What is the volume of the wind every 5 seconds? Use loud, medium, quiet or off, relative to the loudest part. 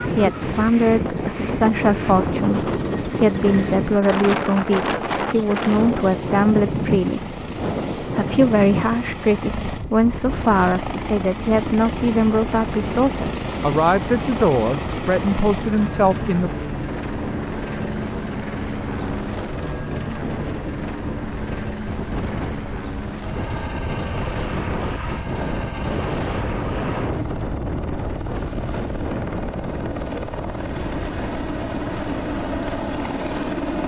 loud, loud, medium, medium, medium, loud, medium.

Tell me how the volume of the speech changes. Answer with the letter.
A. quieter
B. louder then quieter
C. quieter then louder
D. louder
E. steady
E.